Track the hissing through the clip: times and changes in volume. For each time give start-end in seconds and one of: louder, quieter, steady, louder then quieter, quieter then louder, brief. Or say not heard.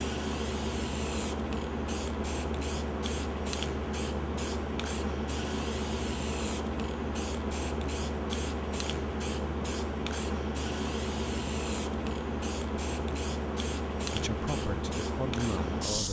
0.0-16.0 steady.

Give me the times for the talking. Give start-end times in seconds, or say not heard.
14.1-16.0.